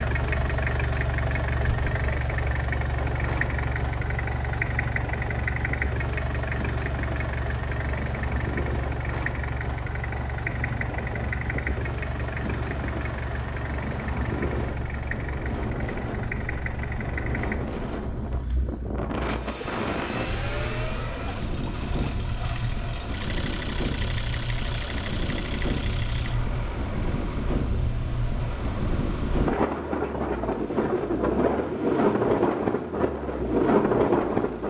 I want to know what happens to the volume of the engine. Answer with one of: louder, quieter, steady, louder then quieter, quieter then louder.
quieter.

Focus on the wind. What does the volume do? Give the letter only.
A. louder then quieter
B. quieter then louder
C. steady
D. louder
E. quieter
D.